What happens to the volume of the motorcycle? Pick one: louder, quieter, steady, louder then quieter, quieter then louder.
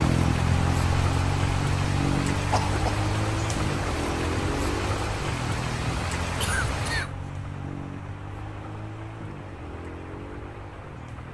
quieter.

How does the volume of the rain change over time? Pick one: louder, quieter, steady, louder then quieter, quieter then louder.
quieter.